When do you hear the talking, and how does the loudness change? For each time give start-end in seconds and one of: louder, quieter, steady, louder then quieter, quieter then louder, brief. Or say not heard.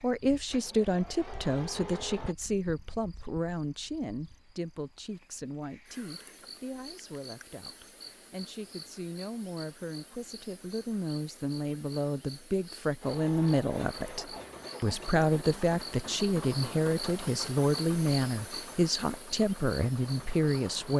0.0-20.9 quieter then louder.